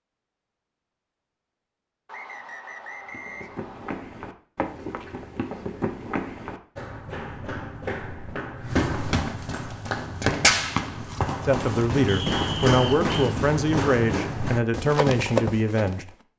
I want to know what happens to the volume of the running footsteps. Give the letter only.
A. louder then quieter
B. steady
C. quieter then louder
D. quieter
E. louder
E.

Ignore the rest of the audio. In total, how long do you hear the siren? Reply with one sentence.
You can't hear the siren here.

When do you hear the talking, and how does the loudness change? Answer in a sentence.
The talking can be heard from 11.4 to 16.1 s, at a steady volume.